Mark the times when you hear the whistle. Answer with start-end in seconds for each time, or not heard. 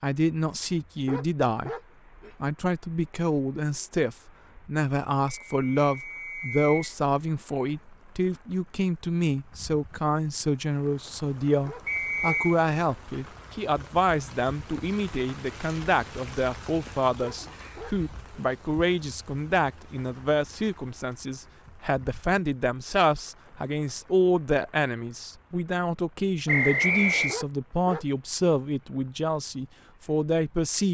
5.2-7.0, 11.8-12.6, 26.4-27.4.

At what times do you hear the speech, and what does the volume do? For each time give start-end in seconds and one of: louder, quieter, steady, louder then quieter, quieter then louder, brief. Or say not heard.
0.0-1.7 brief
2.4-30.8 steady.